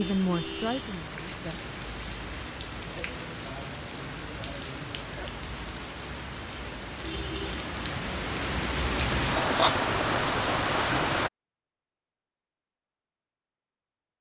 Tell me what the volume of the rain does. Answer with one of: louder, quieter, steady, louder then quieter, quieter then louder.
louder.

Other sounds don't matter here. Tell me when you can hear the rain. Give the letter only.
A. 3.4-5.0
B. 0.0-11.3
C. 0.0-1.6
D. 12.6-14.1
B.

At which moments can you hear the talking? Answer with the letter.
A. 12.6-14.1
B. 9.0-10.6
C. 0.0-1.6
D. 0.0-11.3
C.